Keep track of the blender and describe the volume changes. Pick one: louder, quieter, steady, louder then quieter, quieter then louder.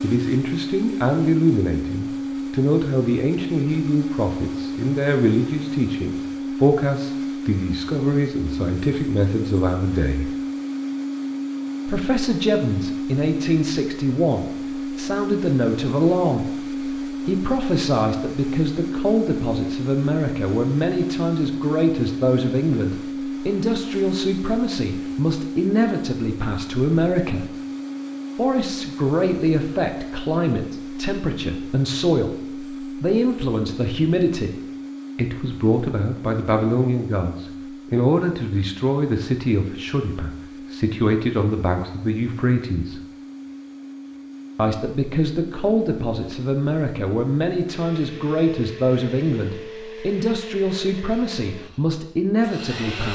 quieter.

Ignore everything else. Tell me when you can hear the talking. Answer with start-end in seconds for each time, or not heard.
0.0-10.3, 11.8-27.5, 28.4-34.5, 35.1-43.0, 44.5-53.1.